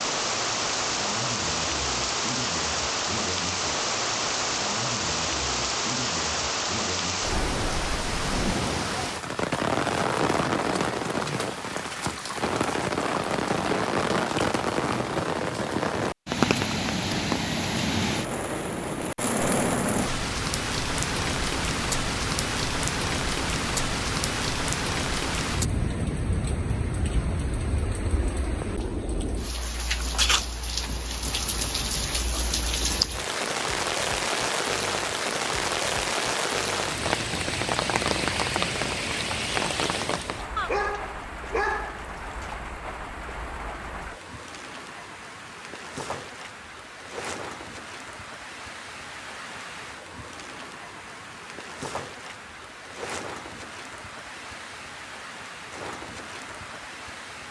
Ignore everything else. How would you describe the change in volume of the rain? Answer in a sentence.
The volume of the rain goes down.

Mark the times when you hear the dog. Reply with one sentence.
The dog can be heard from 40.5 to 42.5 s.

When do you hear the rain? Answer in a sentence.
You can hear the rain from 0.0 to 57.4 s.